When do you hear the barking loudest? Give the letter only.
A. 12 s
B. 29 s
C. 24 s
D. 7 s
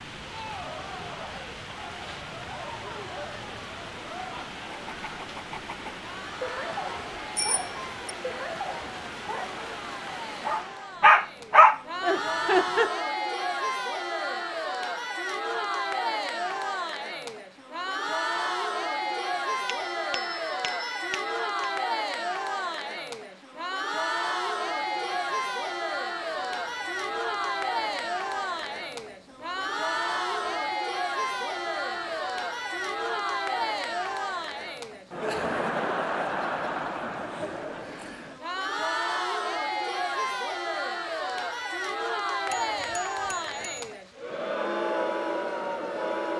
A.